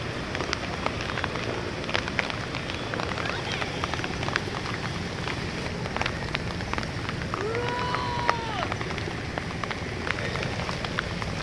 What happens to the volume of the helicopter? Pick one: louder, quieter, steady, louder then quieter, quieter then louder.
steady.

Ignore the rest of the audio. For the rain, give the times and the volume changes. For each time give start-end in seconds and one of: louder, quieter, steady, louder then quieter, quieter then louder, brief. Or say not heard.
0.0-11.3 steady.